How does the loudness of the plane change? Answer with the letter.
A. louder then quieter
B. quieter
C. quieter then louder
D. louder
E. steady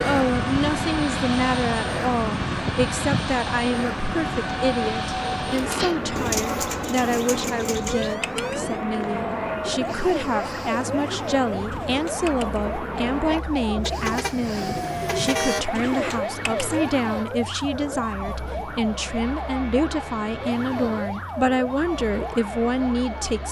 B.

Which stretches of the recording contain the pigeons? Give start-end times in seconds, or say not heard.
5.3-16.7.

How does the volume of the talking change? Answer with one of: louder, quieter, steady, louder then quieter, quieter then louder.
steady.